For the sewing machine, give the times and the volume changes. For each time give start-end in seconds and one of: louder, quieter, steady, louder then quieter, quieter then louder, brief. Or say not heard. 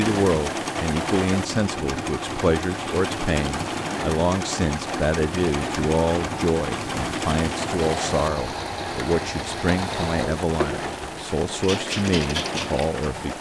0.0-13.1 steady.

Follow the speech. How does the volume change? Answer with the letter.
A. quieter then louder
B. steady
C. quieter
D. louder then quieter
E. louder
B.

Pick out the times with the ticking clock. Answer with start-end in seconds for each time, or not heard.
not heard.